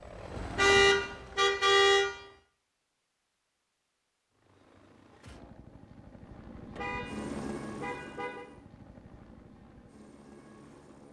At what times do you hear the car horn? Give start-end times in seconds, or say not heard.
0.6-2.0, 6.8-8.4.